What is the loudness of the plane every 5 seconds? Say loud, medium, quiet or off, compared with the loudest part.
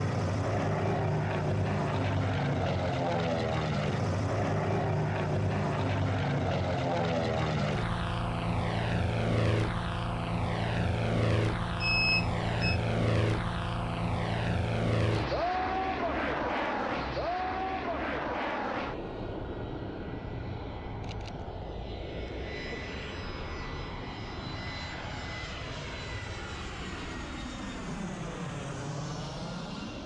loud, loud, loud, loud, medium, medium.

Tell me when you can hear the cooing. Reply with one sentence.
The cooing can't be heard in this clip.